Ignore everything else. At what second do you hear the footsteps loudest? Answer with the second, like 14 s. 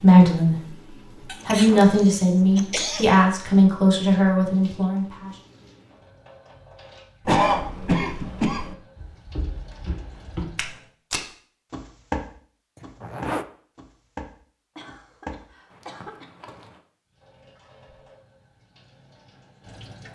12 s.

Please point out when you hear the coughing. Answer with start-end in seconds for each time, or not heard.
1.2-3.1, 7.2-8.8, 14.8-16.2.